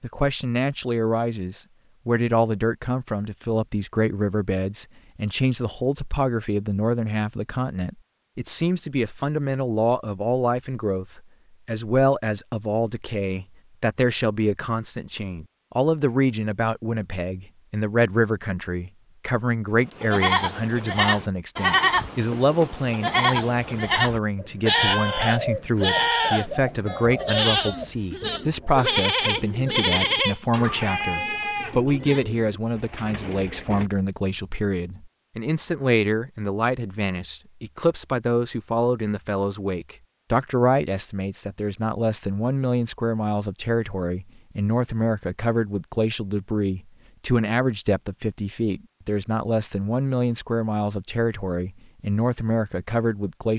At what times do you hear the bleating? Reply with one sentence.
You can hear the bleating from 19.9 to 32.2 s.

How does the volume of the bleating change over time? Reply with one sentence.
The loudness of the bleating stays about the same.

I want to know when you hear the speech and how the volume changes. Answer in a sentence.
You can hear the speech from 0.0 to 53.5 s, at a steady volume.